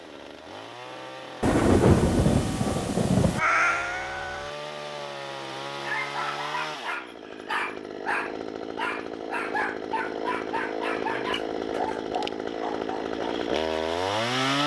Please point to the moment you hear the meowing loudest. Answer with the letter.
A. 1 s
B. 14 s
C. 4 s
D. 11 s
C.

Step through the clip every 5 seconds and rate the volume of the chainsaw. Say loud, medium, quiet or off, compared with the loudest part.
medium, medium, loud.